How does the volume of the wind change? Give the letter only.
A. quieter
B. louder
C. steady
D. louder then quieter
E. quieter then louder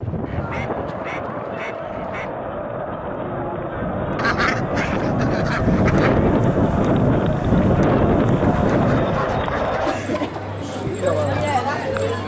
B.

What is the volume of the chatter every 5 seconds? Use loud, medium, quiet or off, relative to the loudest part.
medium, loud, loud.